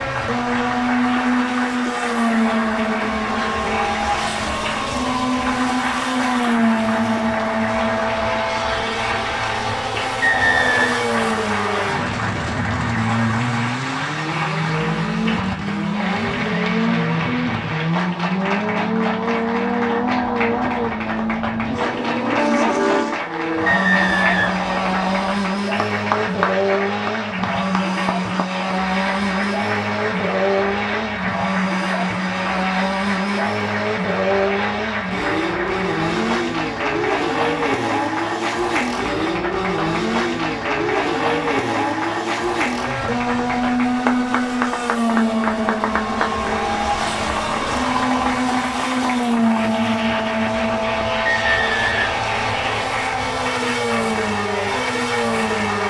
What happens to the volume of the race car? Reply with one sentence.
The loudness of the race car stays about the same.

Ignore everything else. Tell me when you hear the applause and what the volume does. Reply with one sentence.
You can hear the applause from 0.0 to 55.8 s, at a steady volume.